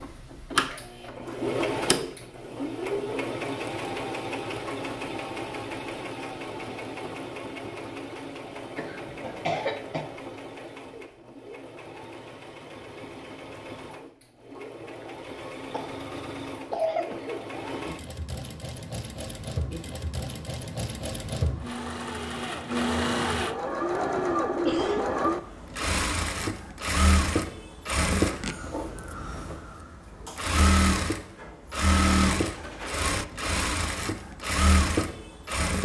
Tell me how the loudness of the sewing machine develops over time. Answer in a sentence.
The loudness of the sewing machine goes down, then up.